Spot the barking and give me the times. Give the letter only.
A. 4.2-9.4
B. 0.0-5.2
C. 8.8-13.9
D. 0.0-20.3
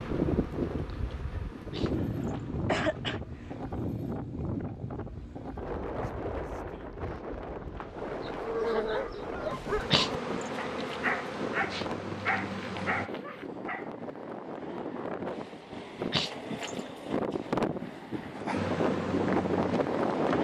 C.